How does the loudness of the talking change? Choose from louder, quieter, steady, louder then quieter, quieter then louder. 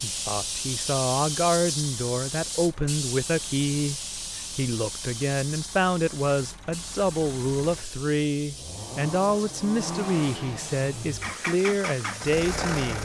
steady.